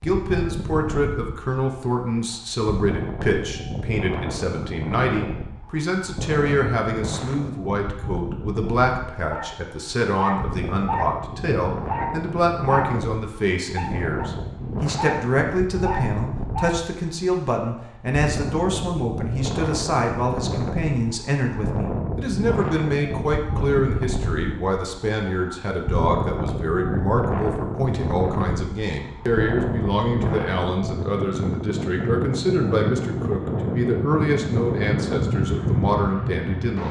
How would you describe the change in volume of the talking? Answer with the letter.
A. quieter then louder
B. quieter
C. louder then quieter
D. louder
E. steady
E.